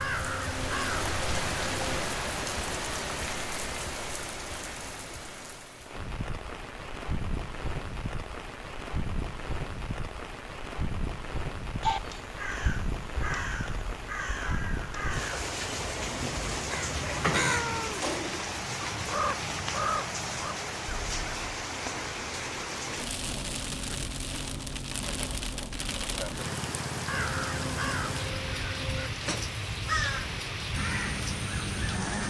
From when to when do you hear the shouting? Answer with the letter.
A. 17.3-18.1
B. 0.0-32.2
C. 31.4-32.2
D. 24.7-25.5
A.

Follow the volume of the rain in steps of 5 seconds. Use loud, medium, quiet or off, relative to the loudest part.
loud, medium, medium, loud, loud, loud, loud.